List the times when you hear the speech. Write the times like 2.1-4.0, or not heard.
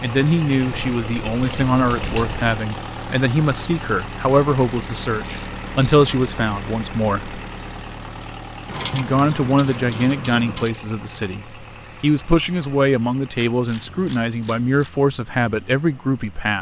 0.0-7.4, 8.9-16.5.